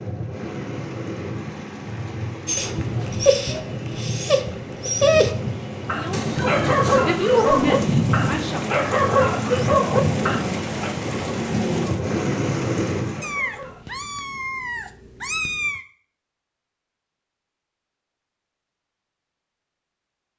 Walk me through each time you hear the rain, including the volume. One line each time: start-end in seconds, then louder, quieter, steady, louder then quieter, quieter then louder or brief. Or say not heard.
0.0-13.4 louder.